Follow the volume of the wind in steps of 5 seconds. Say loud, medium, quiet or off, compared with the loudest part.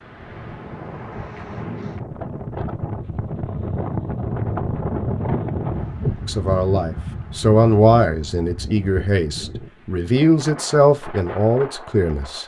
loud, loud, medium.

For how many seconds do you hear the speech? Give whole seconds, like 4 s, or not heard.
6 s.